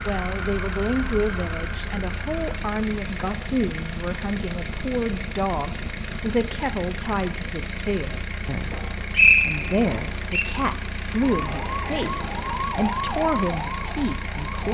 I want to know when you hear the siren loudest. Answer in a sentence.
The volume of the siren peaks at 13 seconds.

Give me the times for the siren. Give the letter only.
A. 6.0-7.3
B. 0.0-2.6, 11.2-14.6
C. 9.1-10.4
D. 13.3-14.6
B.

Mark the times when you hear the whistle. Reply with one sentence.
The whistle can be heard from 9.1 to 10.4 s.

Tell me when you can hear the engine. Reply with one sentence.
The engine can be heard from 0.0 to 14.6 s.